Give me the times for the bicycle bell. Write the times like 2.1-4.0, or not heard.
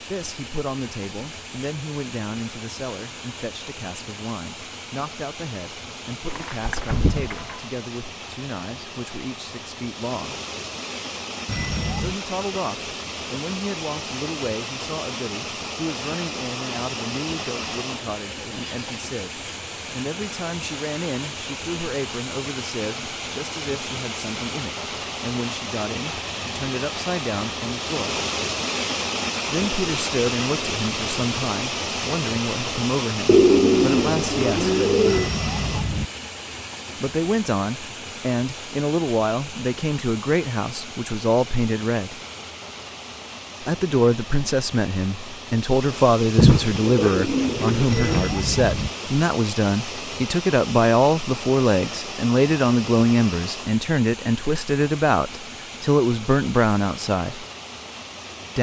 11.4-12.2, 35.0-36.0, 47.9-48.9.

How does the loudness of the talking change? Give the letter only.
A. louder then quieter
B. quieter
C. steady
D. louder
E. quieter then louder
D.